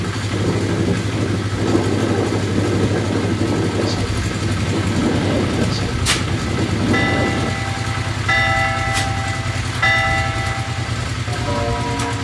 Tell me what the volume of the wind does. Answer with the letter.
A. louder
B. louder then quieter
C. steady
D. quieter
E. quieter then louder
D.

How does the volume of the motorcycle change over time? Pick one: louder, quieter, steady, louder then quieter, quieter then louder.
steady.